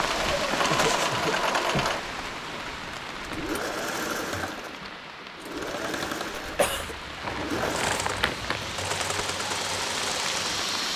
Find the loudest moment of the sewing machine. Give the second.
1 s.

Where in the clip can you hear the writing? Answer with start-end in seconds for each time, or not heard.
not heard.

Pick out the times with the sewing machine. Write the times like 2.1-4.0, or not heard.
0.0-10.7.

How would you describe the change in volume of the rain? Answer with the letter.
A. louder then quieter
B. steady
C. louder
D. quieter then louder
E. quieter
D.